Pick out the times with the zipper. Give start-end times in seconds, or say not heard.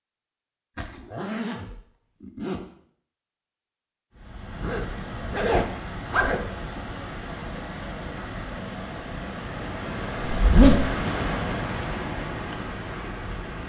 0.8-2.6, 4.6-6.5, 10.2-10.9.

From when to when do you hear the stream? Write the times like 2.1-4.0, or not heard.
4.1-13.6.